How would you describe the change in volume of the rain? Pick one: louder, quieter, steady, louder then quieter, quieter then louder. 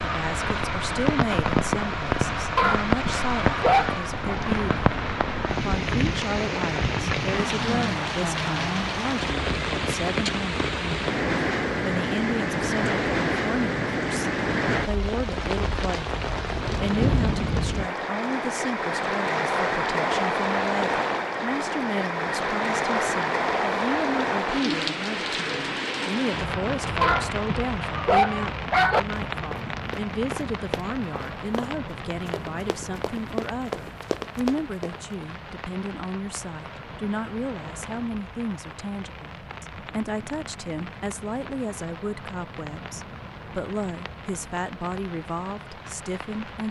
quieter.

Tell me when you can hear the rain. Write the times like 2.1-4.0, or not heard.
0.0-46.6.